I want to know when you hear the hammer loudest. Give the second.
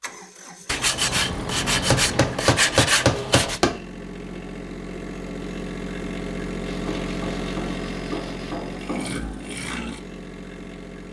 3 s.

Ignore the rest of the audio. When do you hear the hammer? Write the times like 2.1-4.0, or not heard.
1.9-3.8, 6.8-9.2.